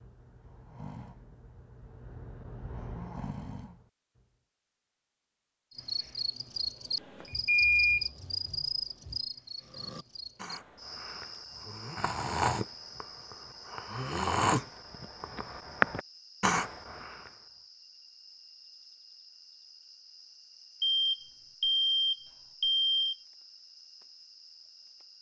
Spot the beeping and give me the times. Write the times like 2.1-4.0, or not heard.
7.2-8.1, 20.8-23.1.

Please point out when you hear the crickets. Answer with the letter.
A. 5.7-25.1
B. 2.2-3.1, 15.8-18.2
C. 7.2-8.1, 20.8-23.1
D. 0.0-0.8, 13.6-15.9
A.